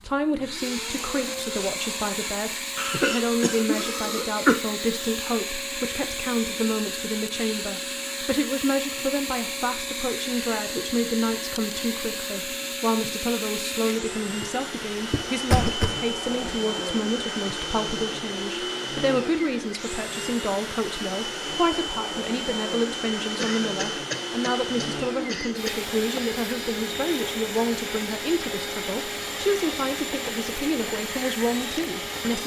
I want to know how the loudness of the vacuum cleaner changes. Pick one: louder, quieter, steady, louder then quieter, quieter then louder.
steady.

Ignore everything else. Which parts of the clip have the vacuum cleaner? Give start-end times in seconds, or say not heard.
0.0-32.4.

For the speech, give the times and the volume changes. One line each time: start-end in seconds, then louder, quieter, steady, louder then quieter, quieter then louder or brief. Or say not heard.
0.0-32.4 steady.